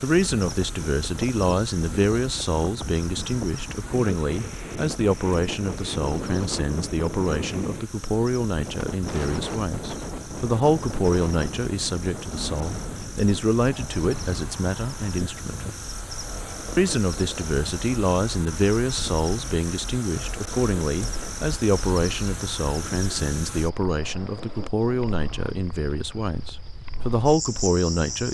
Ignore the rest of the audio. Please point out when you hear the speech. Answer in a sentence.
The speech can be heard from 0.0 to 15.7 s and from 16.8 to 28.2 s.